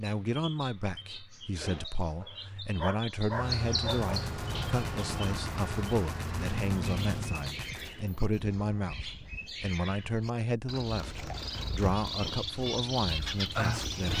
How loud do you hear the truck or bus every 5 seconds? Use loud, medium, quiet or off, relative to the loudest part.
loud, loud, off.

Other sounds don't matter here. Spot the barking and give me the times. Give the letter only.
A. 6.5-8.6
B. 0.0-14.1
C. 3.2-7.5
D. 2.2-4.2
D.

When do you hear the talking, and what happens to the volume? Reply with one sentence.
The talking can be heard from 0.0 to 14.1 s, at a steady volume.